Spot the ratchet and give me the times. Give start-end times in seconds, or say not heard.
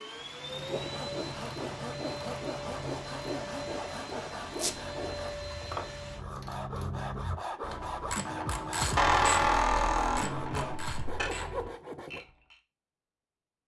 0.1-12.6.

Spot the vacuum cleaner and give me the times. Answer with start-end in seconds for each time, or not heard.
0.0-6.2.